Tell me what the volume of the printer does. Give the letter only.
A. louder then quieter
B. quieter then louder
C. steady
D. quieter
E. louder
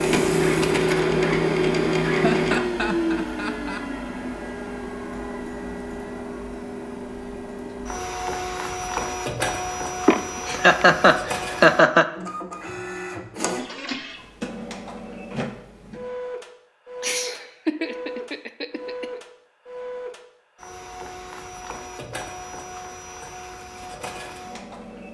D.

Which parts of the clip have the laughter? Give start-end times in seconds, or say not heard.
2.0-3.9, 10.1-12.1, 17.0-19.2.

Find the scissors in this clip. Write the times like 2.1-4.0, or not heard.
not heard.